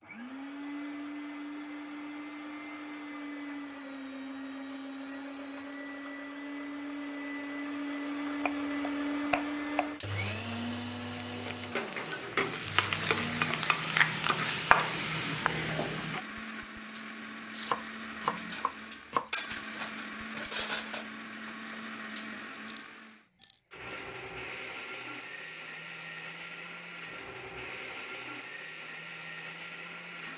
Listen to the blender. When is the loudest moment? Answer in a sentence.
The loudest moment of the blender is at 9 seconds.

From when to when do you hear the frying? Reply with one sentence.
You can hear the frying from 11.1 to 16.2 s.